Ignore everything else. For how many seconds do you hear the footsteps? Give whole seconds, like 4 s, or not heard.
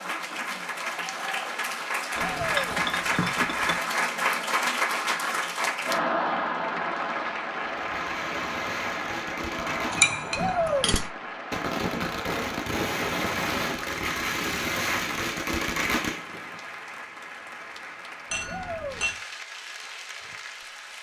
not heard.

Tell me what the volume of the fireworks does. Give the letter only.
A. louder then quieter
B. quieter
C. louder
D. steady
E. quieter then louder
C.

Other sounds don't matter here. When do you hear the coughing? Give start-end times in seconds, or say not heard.
not heard.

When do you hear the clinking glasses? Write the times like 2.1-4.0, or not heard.
2.1-3.8, 9.7-11.1, 18.3-19.2.